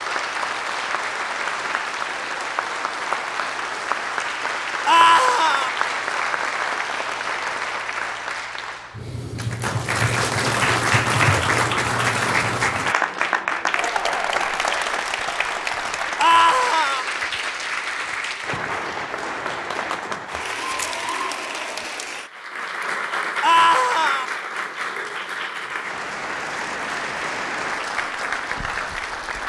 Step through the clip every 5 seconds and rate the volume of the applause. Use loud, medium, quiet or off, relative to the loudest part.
medium, medium, loud, medium, medium, medium.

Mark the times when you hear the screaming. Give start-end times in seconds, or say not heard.
4.8-5.7, 16.2-17.1, 23.4-24.2.